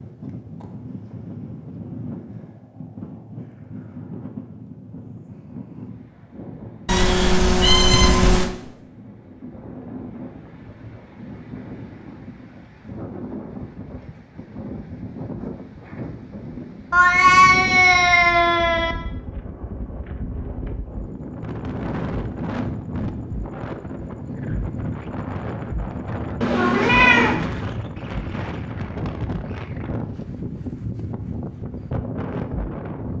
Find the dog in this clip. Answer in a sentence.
You can't hear the dog here.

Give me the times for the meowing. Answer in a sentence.
You can hear the meowing from 6.8 to 8.5 s, from 16.9 to 18.9 s and from 26.4 to 27.4 s.